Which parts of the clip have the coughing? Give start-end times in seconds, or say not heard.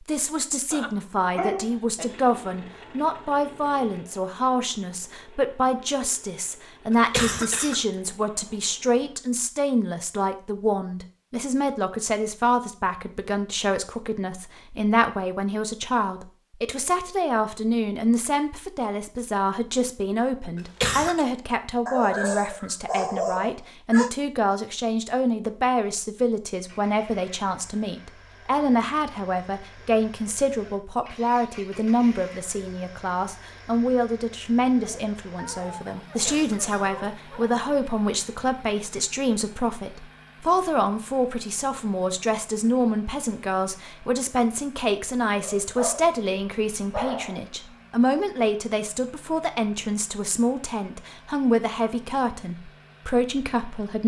6.9-7.8, 20.6-21.2, 36.2-36.9.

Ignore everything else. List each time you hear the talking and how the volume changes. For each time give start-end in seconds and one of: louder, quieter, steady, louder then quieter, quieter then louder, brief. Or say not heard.
0.1-54.0 steady.